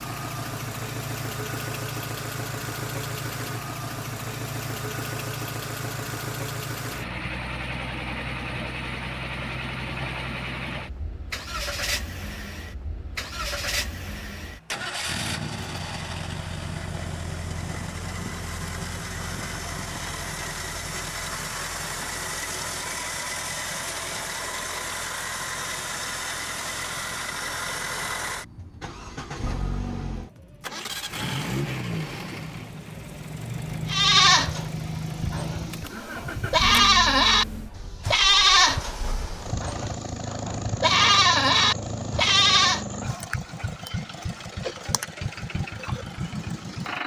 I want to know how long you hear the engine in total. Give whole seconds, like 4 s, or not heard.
47 s.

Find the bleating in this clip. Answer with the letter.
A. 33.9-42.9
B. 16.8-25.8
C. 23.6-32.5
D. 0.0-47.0
A.